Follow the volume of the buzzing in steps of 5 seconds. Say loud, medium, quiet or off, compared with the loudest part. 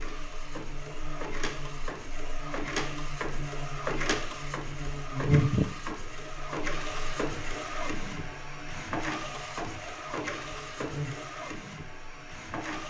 medium, loud, medium.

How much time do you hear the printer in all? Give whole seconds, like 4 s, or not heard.
13 s.